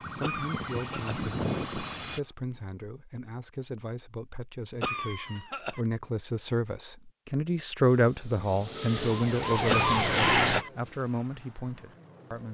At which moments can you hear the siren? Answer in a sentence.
The siren can be heard from 0.0 to 2.4 s and from 8.9 to 10.7 s.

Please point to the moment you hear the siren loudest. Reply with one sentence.
The volume of the siren peaks at 10 seconds.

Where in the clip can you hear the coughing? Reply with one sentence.
The coughing can be heard from 0.2 to 1.2 s, from 4.8 to 5.8 s and from 9.7 to 10.7 s.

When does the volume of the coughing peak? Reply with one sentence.
The loudest moment of the coughing is at 10 seconds.